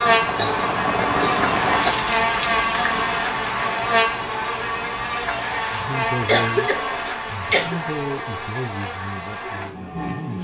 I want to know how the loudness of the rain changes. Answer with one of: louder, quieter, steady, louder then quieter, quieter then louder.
quieter.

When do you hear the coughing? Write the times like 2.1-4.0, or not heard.
0.3-1.9, 6.2-7.8.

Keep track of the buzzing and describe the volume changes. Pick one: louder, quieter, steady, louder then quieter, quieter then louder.
quieter.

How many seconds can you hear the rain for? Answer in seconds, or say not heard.
7 s.